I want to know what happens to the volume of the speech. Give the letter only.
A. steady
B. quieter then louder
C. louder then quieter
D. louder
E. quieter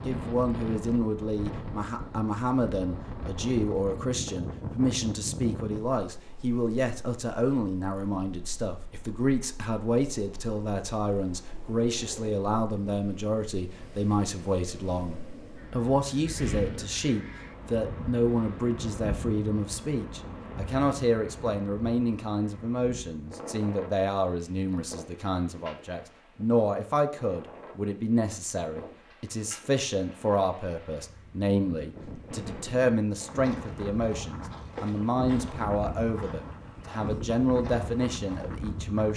A.